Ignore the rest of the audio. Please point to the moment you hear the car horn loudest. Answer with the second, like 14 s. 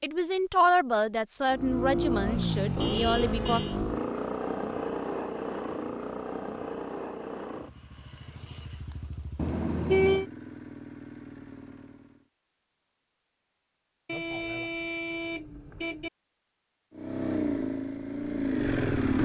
10 s.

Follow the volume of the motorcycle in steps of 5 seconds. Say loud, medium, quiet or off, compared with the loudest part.
loud, medium, quiet, loud.